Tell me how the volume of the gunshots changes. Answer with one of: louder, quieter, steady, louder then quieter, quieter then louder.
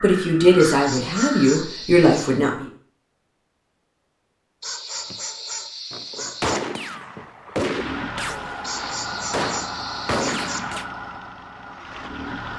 quieter then louder.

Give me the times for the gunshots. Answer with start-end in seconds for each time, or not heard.
5.9-10.8.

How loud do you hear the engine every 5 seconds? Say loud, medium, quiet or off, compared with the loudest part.
off, loud, loud.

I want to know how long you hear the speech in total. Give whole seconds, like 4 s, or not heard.
3 s.